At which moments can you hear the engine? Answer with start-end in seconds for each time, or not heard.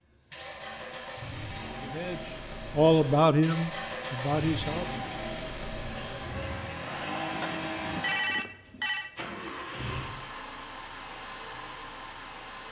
0.0-12.6.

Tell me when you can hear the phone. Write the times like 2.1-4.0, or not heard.
7.4-9.1.